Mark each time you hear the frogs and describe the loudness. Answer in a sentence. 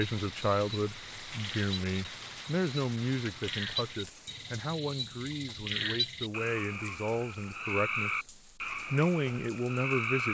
You can hear the frogs from 0.0 to 10.2 s, getting louder.